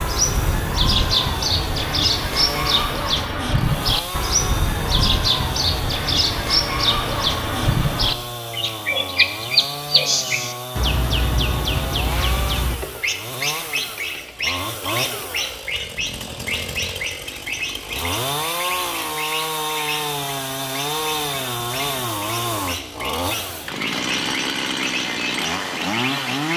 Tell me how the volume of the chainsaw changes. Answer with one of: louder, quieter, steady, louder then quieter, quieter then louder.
louder.